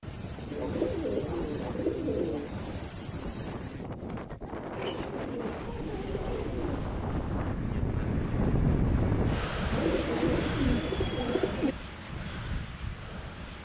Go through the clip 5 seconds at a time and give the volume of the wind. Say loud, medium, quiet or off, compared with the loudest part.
medium, loud, medium.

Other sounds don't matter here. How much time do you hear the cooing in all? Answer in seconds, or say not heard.
6 s.